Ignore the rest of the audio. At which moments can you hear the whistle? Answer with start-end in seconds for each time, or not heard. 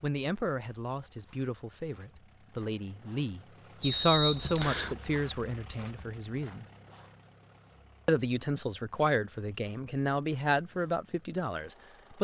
3.8-5.0.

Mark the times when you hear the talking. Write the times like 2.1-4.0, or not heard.
0.0-6.7, 8.1-12.1.